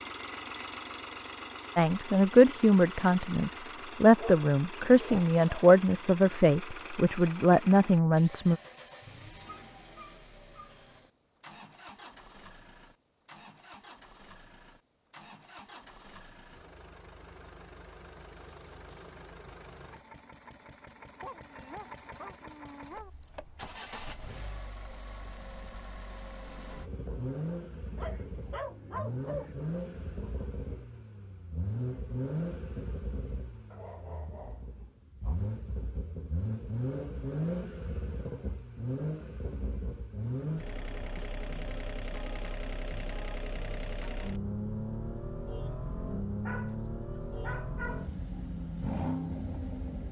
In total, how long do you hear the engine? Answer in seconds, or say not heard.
50 s.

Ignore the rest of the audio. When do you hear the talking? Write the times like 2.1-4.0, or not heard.
1.8-8.6.